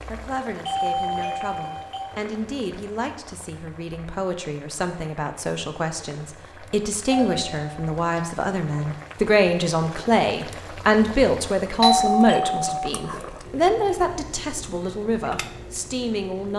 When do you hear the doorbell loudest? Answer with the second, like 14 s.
12 s.